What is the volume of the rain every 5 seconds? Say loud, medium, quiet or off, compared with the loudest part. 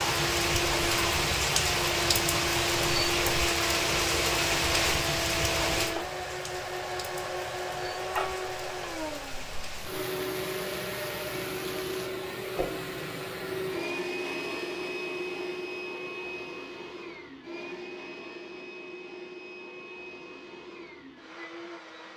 loud, medium, quiet, off, off.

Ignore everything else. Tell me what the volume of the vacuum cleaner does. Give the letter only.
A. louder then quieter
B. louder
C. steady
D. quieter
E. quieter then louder
D.